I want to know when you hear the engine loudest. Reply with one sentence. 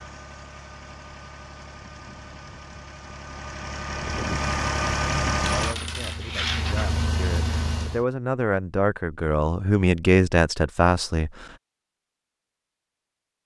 The loudest moment of the engine is at 5 seconds.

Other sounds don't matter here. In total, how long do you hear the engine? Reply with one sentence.
You can hear the engine for 8 seconds altogether.